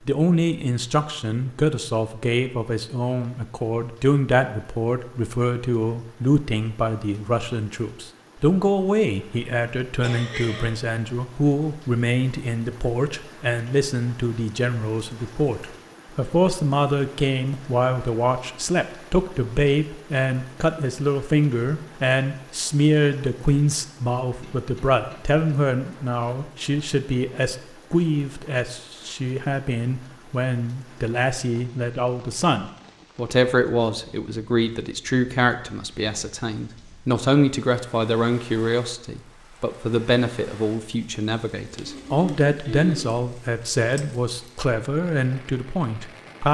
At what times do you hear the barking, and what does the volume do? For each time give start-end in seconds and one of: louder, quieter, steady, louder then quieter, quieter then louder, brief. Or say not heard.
not heard.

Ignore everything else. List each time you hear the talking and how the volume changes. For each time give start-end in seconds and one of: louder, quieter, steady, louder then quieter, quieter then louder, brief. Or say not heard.
0.1-46.4 steady.